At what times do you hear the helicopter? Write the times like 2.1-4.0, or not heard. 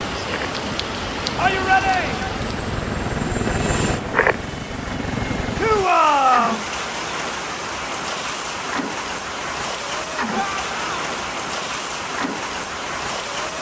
0.0-5.9.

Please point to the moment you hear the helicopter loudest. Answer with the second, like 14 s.
4 s.